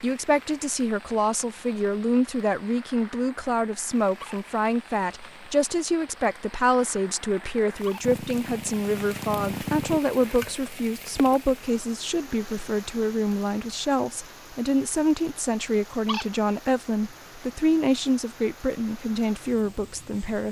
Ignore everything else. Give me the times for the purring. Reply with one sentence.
The purring can be heard from 8.0 to 10.0 s.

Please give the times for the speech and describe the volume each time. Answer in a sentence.
You can hear the speech from 0.0 to 20.4 s, at a steady volume.